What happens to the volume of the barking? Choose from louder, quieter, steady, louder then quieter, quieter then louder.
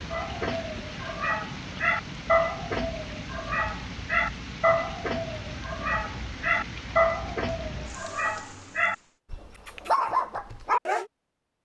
steady.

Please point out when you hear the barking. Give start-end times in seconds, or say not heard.
0.1-11.1.